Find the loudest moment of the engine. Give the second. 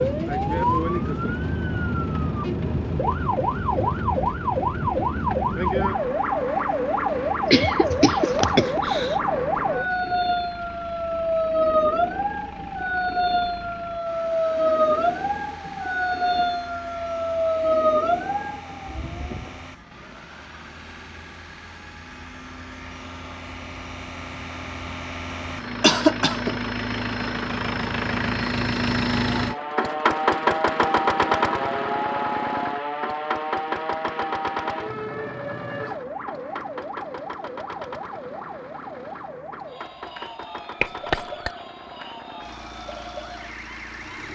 31 s.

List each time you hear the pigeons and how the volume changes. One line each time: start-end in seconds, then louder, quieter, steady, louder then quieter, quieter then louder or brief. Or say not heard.
not heard.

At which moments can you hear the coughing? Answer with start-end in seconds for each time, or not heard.
7.2-9.2, 25.8-26.6, 40.8-41.5.